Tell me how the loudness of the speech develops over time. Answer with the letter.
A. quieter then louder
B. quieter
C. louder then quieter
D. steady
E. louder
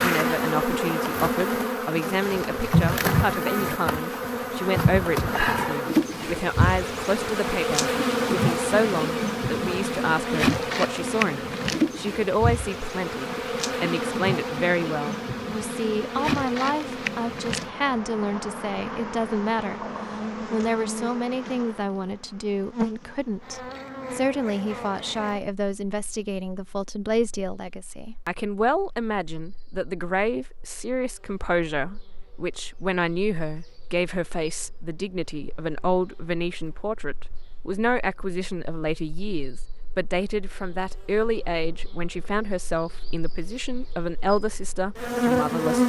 D.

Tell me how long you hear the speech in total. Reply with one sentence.
You can hear the speech for 45 seconds altogether.